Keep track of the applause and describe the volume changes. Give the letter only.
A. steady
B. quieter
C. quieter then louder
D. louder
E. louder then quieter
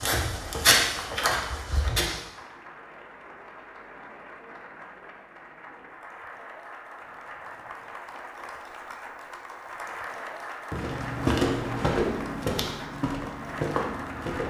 D.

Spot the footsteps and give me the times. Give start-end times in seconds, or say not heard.
0.0-2.2, 10.7-14.4.